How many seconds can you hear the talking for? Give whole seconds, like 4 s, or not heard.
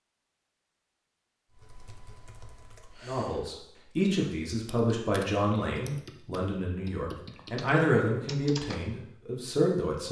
7 s.